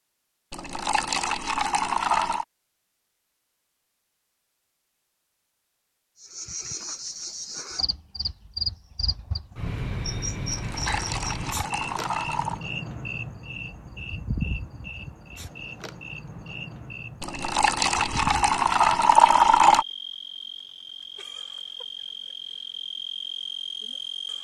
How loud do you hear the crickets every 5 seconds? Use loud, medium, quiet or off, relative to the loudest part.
off, loud, loud, medium, loud.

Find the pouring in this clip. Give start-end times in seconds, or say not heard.
0.5-2.5, 10.5-12.6, 17.2-19.9.